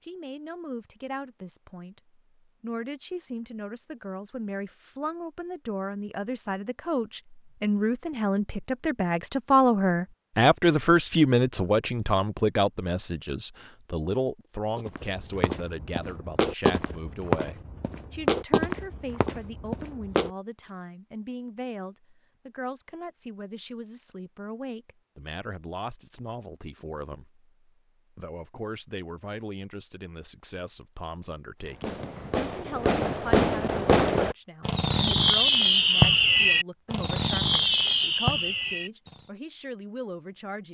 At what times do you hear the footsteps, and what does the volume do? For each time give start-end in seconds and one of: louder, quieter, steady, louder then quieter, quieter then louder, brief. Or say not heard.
14.8-20.3 louder then quieter.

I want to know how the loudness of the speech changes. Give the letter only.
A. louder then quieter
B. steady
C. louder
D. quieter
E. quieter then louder
A.